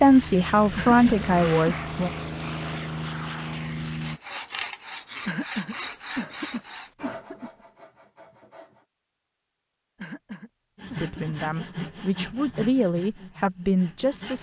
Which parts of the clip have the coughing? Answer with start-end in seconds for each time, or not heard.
0.8-1.8, 5.2-7.5, 9.9-11.3.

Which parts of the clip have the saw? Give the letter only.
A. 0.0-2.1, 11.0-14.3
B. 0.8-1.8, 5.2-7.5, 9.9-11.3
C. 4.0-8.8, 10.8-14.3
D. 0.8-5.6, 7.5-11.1
C.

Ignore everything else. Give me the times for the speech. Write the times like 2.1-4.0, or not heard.
0.0-2.1, 11.0-14.3.